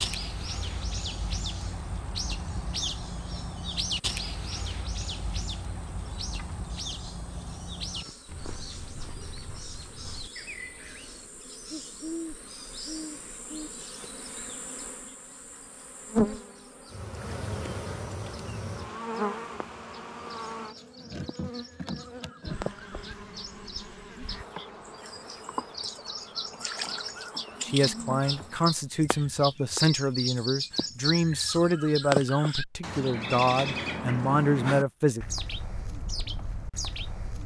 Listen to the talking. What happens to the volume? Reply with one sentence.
The loudness of the talking stays about the same.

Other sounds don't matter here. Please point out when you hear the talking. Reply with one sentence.
You can hear the talking from 27.6 to 35.2 s.